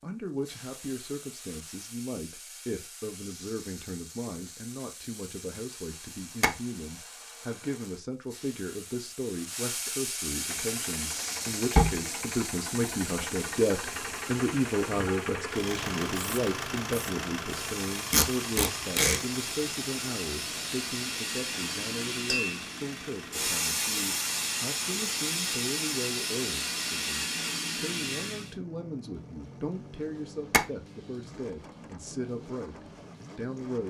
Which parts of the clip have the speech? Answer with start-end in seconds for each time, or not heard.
0.0-33.8.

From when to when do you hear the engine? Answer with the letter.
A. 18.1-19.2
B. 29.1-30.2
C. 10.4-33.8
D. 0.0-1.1
C.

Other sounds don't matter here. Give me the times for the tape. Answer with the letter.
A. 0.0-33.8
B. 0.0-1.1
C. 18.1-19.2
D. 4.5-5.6
C.